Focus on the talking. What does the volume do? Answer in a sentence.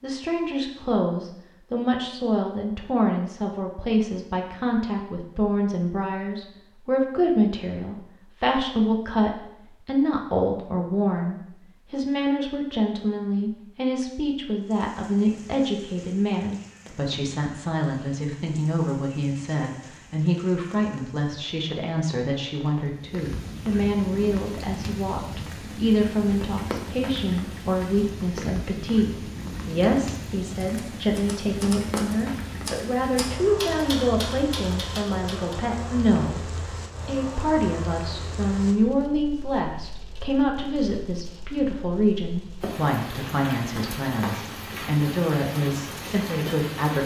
The volume of the talking stays about the same.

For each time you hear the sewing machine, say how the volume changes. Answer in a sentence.
The sewing machine can't be heard in this clip.